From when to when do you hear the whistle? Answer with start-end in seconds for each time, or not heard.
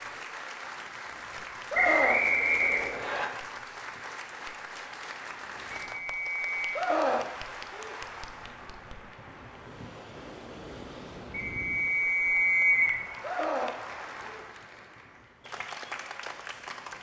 1.7-3.2, 6.0-6.7, 11.3-13.0.